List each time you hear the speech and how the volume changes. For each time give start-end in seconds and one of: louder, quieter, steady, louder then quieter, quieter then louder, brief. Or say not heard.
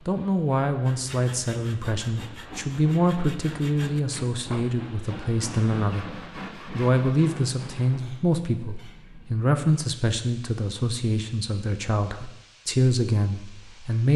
0.1-14.1 steady.